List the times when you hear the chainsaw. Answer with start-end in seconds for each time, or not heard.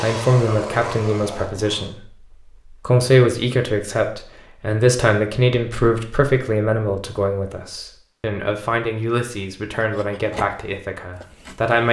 0.0-1.9.